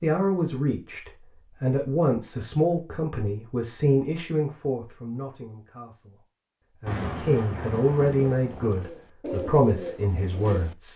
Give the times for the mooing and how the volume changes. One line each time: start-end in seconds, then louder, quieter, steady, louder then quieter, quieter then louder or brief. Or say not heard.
not heard.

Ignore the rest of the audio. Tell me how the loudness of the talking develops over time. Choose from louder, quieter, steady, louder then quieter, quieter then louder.
quieter then louder.